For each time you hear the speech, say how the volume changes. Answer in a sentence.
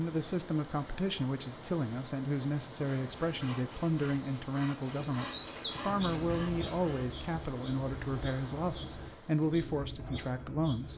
You can hear the speech from 0.0 to 10.9 s, at a steady volume.